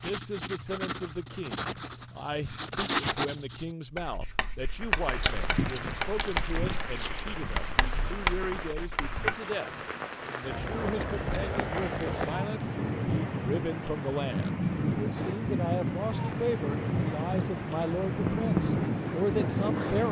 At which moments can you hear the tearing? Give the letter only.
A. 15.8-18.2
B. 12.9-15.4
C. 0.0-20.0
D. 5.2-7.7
D.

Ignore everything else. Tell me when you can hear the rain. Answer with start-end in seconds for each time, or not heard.
4.7-20.0.